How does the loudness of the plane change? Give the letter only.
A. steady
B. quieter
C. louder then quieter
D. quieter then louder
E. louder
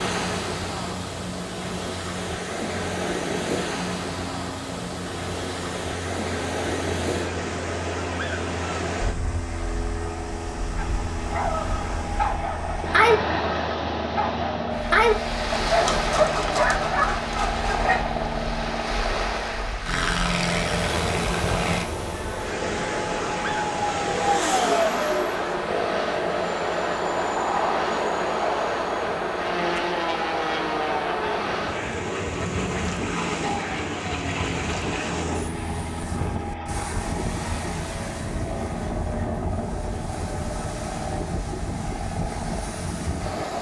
C.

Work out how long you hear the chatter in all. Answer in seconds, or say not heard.
not heard.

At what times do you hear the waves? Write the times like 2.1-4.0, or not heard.
0.0-43.5.